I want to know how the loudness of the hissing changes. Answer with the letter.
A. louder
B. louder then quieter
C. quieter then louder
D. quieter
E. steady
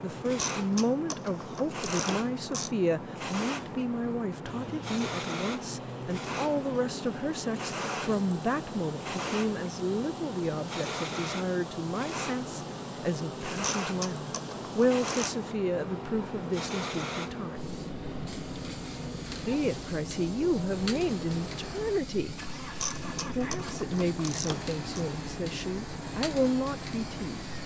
E.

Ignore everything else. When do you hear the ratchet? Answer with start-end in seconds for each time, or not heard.
0.3-2.7, 13.8-15.3, 22.8-25.1.